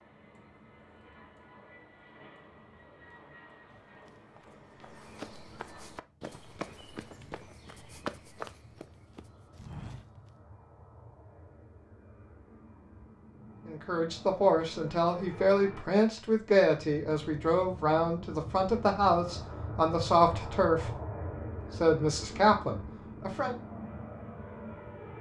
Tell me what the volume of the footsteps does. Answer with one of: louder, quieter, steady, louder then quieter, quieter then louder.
louder then quieter.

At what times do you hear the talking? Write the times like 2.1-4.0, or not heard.
13.7-20.9, 21.8-23.6.